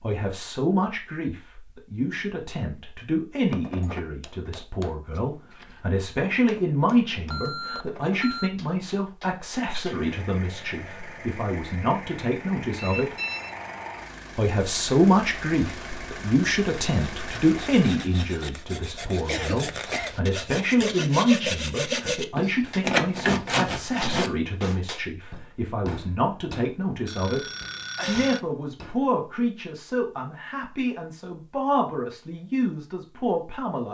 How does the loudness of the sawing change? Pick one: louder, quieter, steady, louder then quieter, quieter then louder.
louder.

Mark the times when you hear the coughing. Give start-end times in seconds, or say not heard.
19.2-20.1.